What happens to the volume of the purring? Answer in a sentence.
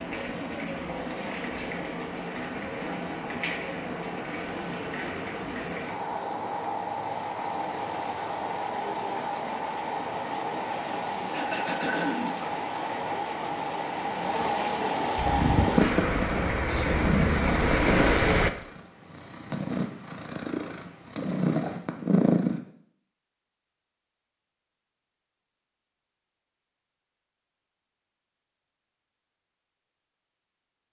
The volume of the purring goes down, then up.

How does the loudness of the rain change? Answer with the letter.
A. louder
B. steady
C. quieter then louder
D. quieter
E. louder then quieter
A.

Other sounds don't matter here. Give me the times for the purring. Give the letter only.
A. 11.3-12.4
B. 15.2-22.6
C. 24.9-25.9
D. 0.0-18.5
B.